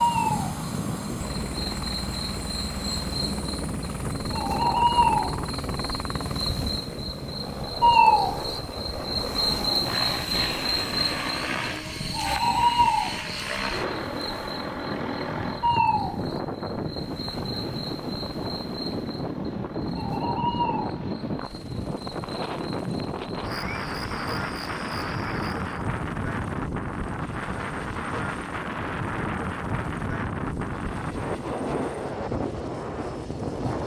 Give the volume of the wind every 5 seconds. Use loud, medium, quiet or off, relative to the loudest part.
medium, medium, medium, loud, loud, loud, loud.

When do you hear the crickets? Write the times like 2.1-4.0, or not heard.
0.0-25.9.